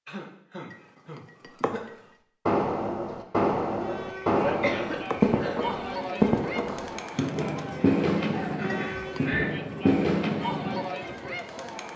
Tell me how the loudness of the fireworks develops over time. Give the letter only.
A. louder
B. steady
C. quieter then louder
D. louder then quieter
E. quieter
B.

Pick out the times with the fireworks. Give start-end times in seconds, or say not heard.
2.5-10.8.